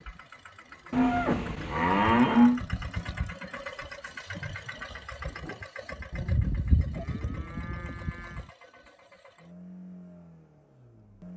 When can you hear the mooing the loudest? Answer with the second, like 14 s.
2 s.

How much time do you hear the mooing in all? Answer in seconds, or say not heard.
4 s.